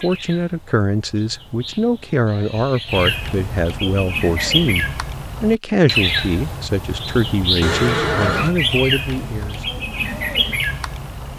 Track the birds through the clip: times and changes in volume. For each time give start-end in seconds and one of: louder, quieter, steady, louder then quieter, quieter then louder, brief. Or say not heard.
0.0-11.3 louder.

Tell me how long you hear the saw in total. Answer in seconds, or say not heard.
not heard.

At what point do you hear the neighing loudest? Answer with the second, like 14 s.
8 s.